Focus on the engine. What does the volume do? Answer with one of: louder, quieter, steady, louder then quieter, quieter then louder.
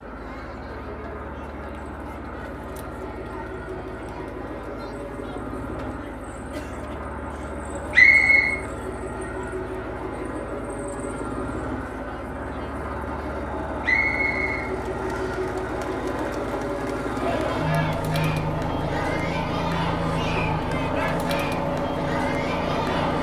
louder.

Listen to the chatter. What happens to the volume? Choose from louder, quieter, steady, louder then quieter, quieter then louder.
louder.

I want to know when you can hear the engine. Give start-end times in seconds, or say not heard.
0.0-23.1.